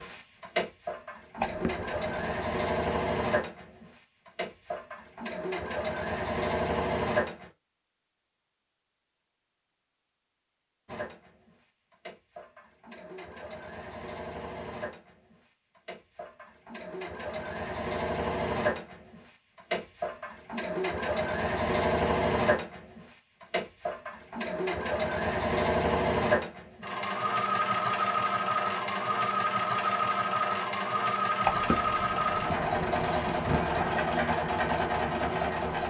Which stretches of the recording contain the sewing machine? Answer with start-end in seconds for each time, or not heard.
0.0-7.5, 10.8-35.8.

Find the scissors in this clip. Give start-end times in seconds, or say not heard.
1.4-2.4, 31.4-33.9.